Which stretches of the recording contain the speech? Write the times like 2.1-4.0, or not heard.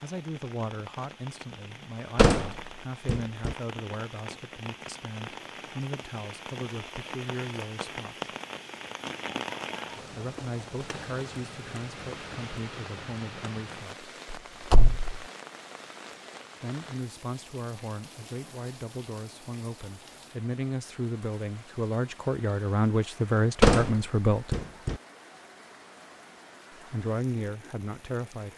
0.0-8.3, 10.2-14.1, 16.6-24.5, 26.9-28.5.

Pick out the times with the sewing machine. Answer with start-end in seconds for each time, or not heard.
not heard.